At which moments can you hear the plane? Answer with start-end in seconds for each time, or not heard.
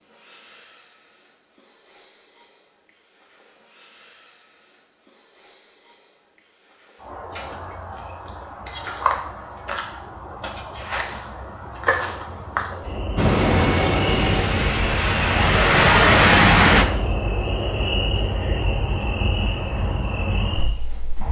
13.2-16.9.